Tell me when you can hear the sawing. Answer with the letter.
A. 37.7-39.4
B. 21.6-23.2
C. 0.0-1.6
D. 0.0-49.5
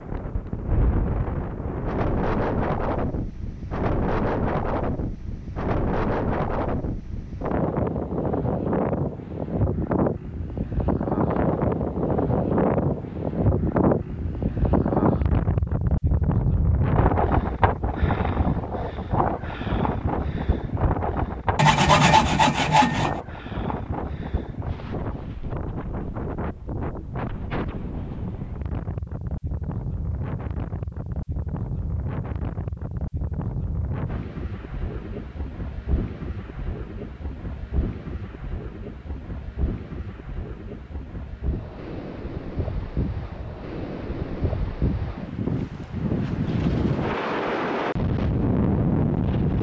B.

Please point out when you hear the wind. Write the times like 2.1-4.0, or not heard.
0.0-49.5.